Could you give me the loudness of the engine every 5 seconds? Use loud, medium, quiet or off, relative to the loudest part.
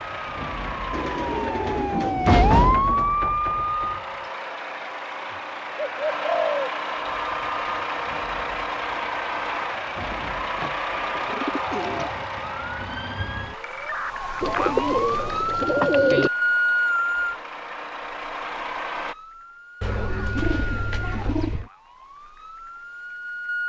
medium, loud, loud, medium, off.